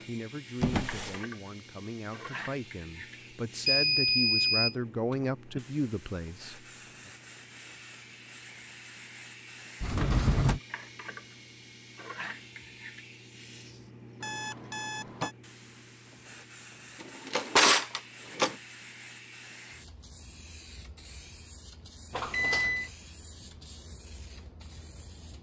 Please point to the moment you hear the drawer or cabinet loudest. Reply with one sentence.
The loudest moment of the drawer or cabinet is at 18 seconds.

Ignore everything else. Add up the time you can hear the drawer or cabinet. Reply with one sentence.
The drawer or cabinet can be heard for 3 seconds in total.